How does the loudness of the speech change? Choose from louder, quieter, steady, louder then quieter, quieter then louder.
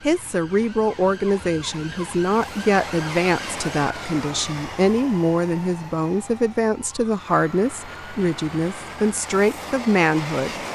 steady.